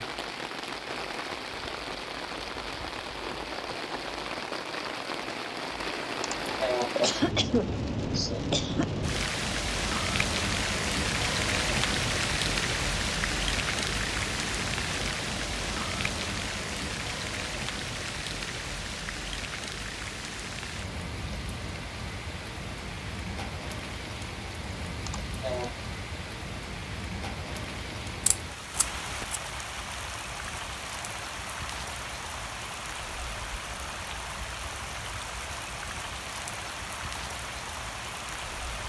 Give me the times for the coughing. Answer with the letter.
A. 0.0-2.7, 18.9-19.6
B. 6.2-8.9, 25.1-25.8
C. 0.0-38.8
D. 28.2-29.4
B.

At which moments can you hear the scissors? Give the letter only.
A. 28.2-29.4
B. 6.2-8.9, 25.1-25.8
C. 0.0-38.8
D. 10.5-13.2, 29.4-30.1
A.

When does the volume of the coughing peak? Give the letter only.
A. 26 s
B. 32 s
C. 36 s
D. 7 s
D.